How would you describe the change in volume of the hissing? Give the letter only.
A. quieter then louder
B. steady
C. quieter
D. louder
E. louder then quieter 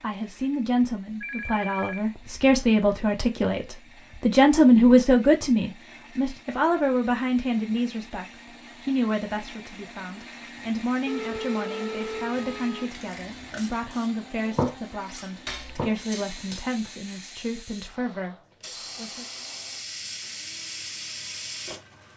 A.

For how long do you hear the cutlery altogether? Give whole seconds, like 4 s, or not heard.
2 s.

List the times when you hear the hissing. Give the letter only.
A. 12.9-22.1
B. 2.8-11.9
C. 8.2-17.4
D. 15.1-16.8
A.